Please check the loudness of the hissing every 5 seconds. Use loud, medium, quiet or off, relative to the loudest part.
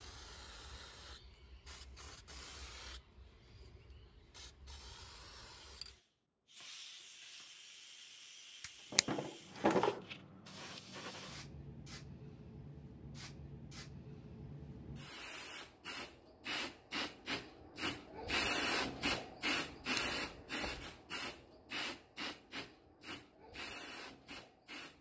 quiet, quiet, medium, loud, medium.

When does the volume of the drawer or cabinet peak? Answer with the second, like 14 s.
10 s.